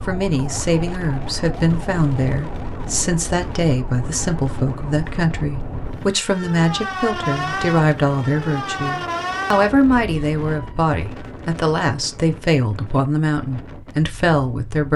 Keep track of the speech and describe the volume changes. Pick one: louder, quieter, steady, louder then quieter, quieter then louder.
steady.